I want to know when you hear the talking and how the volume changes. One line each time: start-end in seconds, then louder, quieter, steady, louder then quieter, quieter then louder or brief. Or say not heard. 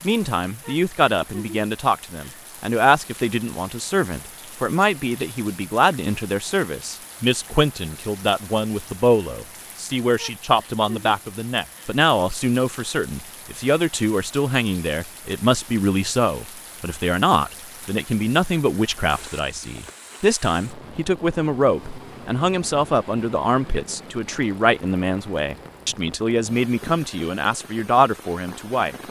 0.0-28.9 steady.